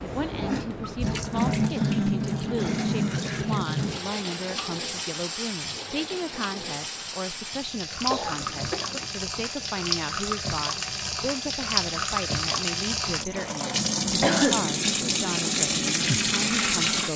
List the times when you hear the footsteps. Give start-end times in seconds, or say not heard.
not heard.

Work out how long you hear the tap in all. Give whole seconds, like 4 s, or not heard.
17 s.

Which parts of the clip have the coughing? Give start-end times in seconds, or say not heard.
1.6-3.6, 8.1-9.1, 14.2-14.7.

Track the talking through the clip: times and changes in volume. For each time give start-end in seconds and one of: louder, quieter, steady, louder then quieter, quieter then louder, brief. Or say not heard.
0.0-17.1 steady.